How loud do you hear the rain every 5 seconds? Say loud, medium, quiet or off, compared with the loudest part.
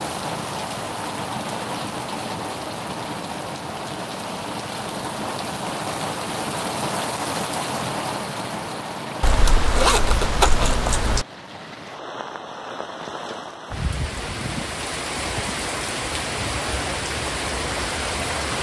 loud, loud, medium, loud.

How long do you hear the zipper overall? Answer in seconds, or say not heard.
2 s.